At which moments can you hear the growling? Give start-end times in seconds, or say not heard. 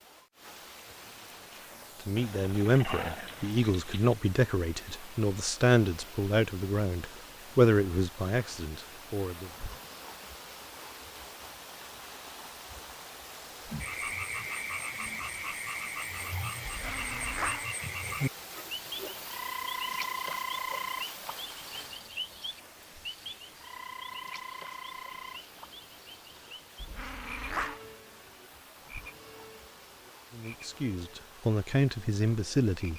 2.1-4.2, 16.6-17.7, 26.8-27.8.